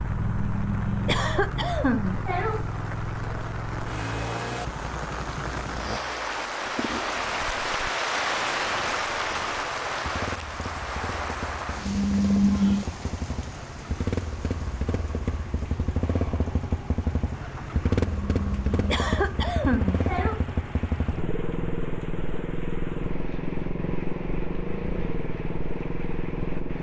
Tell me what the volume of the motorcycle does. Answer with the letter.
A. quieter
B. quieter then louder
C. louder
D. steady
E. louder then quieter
B.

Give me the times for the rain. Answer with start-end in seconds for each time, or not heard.
0.0-26.7.